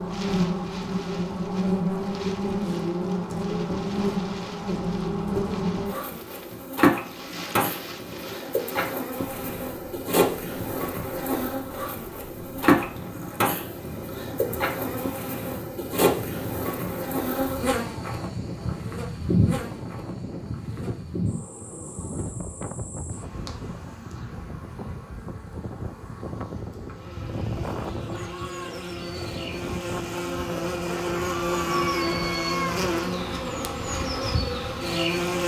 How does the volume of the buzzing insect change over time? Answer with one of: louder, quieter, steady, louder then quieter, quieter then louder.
quieter then louder.